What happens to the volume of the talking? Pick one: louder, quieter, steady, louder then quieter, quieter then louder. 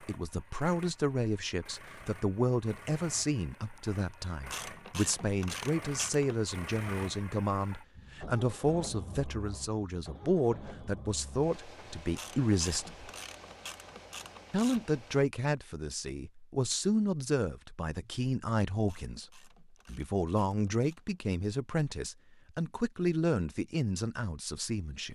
steady.